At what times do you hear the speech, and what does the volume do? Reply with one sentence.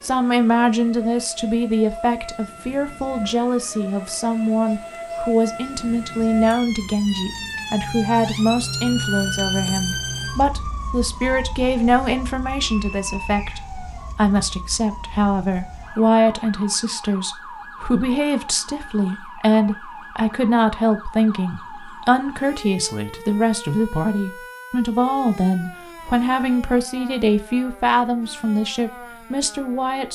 You can hear the speech from 0.0 to 30.1 s, at a steady volume.